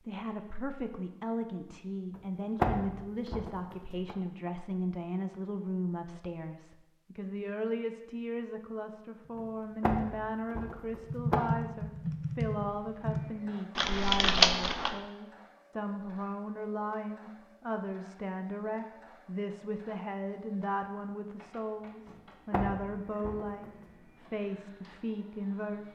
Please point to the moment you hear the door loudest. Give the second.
3 s.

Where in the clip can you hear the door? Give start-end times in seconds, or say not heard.
2.1-4.2, 9.3-11.4, 22.1-23.7.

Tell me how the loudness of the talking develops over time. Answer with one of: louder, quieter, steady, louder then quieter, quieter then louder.
steady.